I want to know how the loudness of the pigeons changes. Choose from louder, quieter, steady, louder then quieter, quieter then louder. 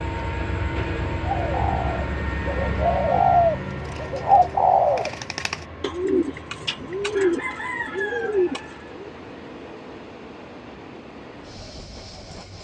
louder then quieter.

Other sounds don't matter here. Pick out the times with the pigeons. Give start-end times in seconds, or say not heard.
1.2-9.1.